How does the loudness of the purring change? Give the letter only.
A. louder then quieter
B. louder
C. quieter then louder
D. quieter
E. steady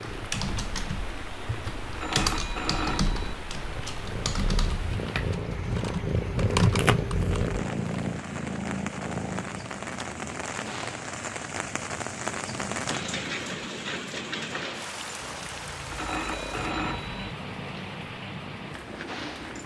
A.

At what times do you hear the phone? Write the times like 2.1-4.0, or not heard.
1.9-3.2, 15.9-17.2.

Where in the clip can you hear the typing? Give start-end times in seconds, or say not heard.
0.0-7.5.